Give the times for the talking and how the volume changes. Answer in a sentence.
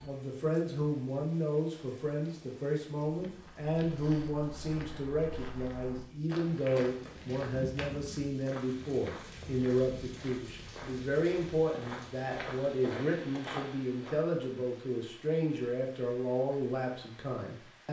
The talking can be heard from 0.0 to 17.8 s, at a steady volume.